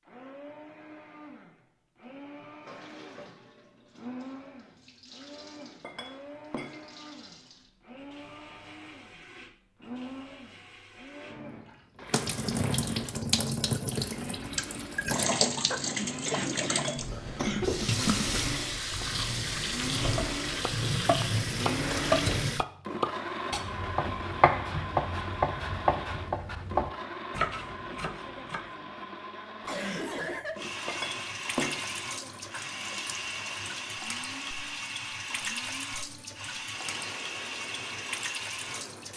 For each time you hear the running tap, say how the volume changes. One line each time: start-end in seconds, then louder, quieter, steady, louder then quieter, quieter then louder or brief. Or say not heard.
2.6-22.6 louder
30.6-39.1 steady.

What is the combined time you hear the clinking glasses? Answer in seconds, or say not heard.
3 s.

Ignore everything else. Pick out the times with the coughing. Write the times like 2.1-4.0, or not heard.
16.2-17.8, 29.6-30.7.